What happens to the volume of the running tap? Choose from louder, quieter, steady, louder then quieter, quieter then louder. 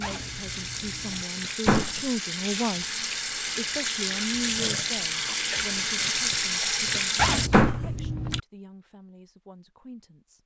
louder.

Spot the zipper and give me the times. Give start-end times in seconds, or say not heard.
0.0-1.2, 7.2-8.4.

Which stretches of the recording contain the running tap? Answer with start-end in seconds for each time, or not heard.
0.0-7.5.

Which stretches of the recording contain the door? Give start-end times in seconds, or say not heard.
1.6-2.1, 7.5-8.0.